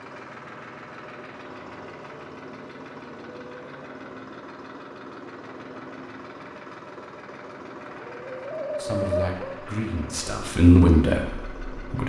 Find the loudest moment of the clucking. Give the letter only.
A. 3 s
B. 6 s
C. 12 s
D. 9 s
D.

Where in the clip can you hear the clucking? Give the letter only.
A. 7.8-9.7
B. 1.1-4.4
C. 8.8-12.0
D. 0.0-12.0
A.